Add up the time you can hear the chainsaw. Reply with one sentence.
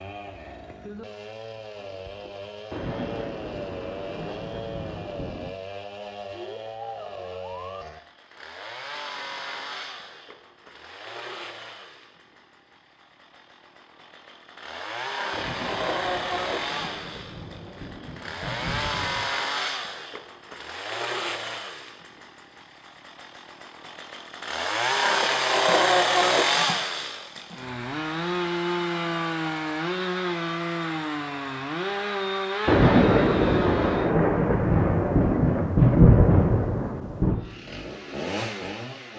You can hear the chainsaw for 36 seconds altogether.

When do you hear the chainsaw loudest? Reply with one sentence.
The loudest moment of the chainsaw is at 26 seconds.